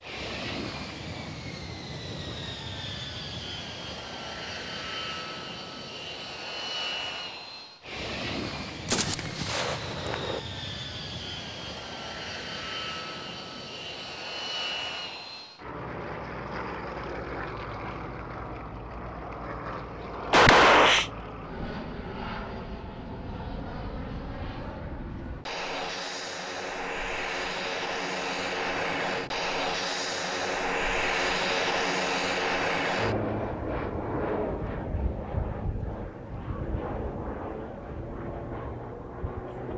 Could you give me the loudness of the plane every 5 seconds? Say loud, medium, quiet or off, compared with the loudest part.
medium, medium, medium, medium, medium, loud, loud, medium.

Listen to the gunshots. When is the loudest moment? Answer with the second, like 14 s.
21 s.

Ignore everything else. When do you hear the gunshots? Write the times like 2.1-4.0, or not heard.
8.8-10.4, 20.3-21.1.